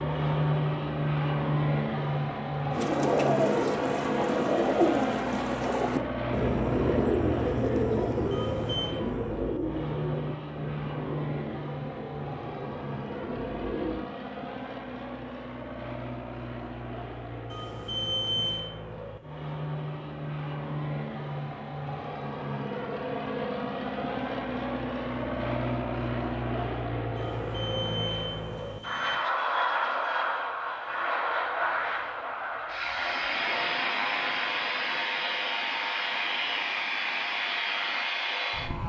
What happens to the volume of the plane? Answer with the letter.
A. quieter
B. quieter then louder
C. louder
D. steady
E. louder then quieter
B.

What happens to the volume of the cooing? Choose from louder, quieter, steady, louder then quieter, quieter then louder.
quieter.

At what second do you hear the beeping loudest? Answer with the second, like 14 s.
18 s.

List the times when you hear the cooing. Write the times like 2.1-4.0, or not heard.
2.7-14.1.